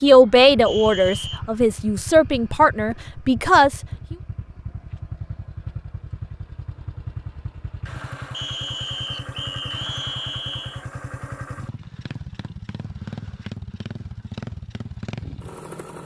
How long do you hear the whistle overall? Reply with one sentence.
The whistle can be heard for 3 seconds in total.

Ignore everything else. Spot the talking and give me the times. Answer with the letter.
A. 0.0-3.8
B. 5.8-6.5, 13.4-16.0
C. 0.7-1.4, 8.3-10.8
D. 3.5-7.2
A.